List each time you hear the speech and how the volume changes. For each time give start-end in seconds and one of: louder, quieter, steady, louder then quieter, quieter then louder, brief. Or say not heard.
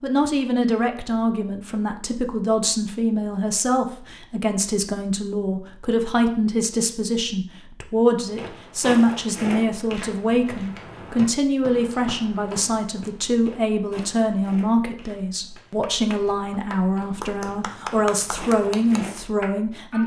0.0-20.0 steady.